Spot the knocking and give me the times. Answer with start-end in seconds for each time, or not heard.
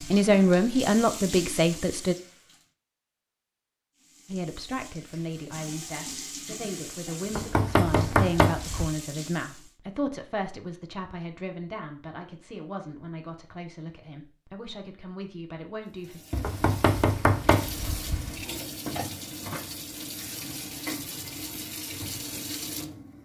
7.3-8.9, 16.4-18.4.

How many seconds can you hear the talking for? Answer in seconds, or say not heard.
14 s.